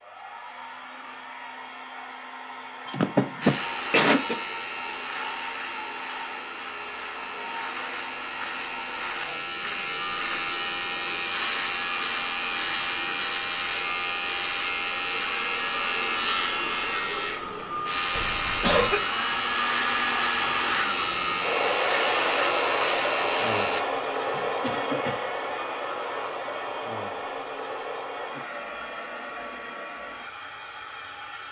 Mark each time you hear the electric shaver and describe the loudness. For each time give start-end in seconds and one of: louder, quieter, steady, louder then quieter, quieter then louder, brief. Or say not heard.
3.4-23.9 louder.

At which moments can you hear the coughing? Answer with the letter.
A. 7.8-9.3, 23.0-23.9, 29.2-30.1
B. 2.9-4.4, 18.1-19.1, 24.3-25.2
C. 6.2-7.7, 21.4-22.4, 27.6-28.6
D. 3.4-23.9
B.